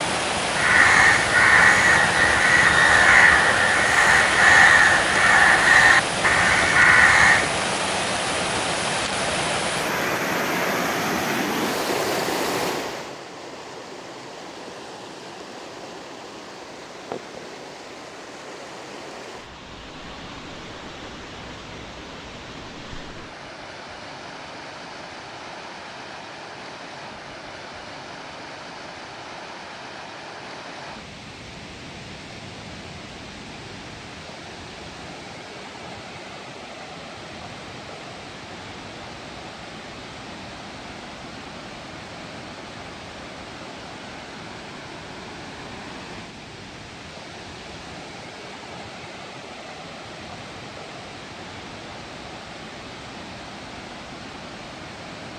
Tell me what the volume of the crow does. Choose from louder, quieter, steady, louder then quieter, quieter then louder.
steady.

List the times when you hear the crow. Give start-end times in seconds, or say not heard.
0.5-7.5.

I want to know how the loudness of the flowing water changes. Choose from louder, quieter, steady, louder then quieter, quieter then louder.
quieter.